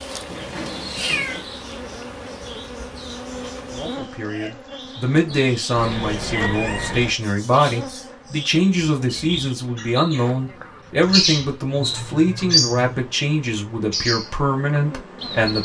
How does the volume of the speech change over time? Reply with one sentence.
The loudness of the speech stays about the same.